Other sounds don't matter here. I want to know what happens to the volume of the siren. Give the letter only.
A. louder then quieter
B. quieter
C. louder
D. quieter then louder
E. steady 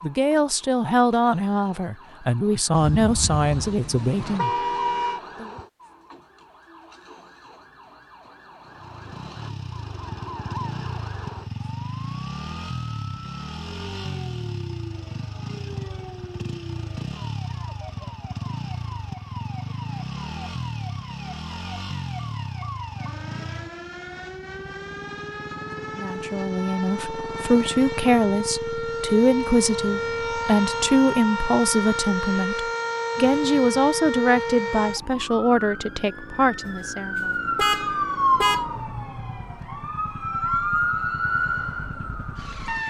C.